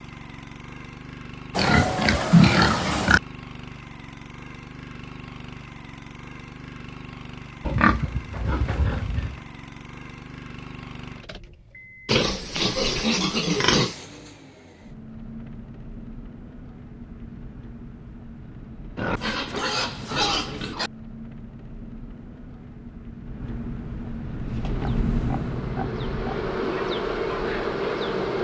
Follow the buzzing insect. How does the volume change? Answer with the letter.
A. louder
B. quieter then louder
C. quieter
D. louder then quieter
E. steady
A.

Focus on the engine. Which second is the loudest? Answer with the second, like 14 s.
25 s.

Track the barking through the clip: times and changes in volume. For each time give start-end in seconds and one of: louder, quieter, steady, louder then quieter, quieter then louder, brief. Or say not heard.
not heard.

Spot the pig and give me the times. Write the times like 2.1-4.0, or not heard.
1.6-3.2, 7.6-9.3, 12.1-13.9, 18.9-20.9, 24.6-26.4.